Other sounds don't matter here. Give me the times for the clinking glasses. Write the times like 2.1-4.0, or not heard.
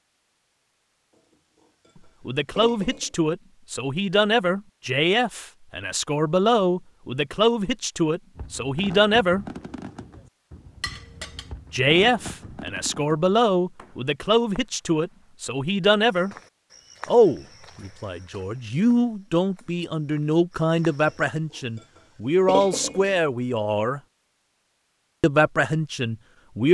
2.5-3.1, 10.8-11.5, 22.4-23.1.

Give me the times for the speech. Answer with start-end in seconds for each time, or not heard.
2.2-9.4, 11.7-16.4, 17.1-24.0, 25.2-26.6.